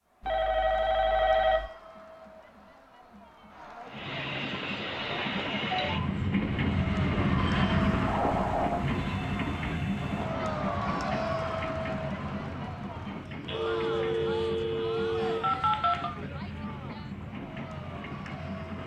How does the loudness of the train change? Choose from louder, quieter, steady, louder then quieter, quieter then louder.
quieter.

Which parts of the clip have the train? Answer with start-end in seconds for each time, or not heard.
3.9-18.8.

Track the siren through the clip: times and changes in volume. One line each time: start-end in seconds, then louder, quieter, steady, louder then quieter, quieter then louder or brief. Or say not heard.
not heard.